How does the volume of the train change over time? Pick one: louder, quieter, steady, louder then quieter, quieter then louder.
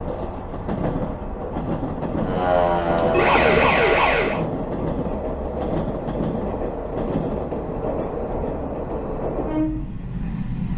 steady.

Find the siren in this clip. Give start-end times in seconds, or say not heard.
2.2-4.4.